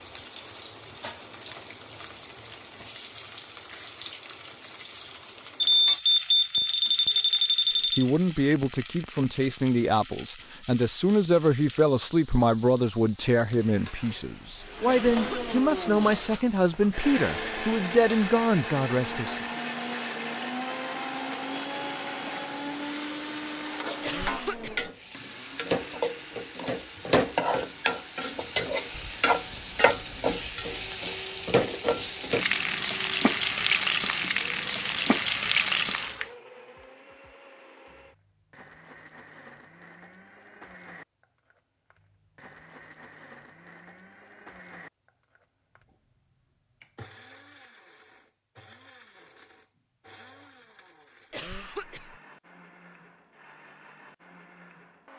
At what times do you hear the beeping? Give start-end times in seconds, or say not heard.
5.6-8.1, 28.9-30.9.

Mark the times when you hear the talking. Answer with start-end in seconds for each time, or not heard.
8.0-19.4.